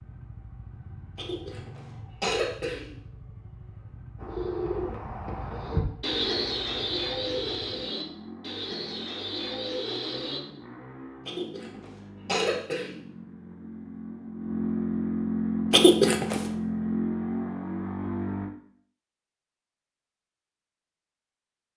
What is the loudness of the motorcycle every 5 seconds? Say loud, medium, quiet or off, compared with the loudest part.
quiet, quiet, medium, loud, off.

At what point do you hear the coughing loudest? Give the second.
16 s.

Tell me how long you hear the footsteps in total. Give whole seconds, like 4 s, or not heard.
not heard.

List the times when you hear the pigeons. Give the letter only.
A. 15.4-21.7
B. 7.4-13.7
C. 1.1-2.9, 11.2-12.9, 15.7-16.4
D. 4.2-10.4
D.